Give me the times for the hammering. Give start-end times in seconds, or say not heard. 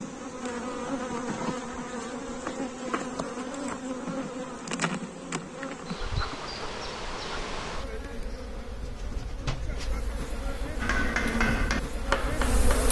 10.8-12.8.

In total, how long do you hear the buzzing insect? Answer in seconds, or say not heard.
13 s.